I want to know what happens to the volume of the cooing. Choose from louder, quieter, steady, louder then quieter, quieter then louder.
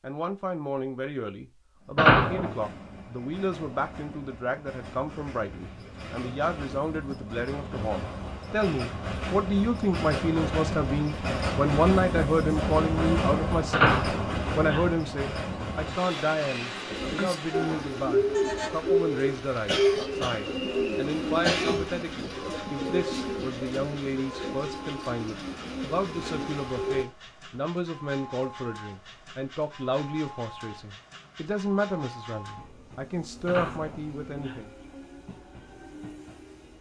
quieter.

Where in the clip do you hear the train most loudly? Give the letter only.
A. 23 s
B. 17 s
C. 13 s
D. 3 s
C.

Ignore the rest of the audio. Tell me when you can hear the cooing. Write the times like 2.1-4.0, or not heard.
16.9-27.1.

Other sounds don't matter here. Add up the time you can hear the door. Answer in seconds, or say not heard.
3 s.